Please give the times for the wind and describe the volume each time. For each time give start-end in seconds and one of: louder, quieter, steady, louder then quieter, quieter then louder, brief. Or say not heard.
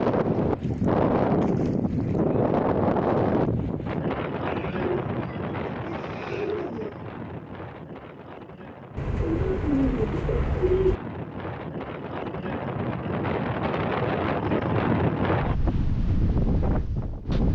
0.0-17.5 quieter then louder.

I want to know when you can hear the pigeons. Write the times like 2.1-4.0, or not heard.
4.5-7.0, 8.9-11.0.